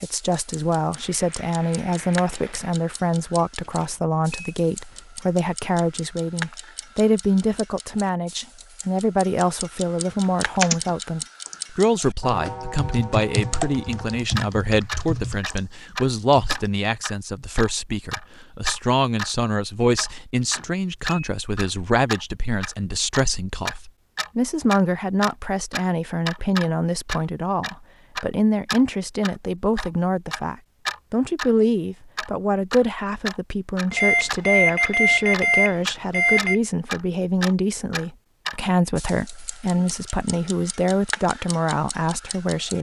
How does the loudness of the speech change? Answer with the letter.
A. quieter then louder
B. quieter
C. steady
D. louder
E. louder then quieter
C.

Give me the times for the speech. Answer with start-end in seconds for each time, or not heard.
0.0-42.7.